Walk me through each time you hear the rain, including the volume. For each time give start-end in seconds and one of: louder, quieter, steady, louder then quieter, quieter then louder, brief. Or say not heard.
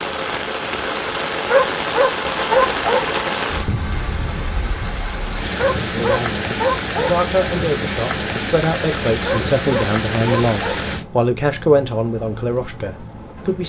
0.0-13.6 quieter.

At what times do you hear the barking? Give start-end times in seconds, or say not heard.
1.4-3.0, 5.5-7.1, 9.2-10.8.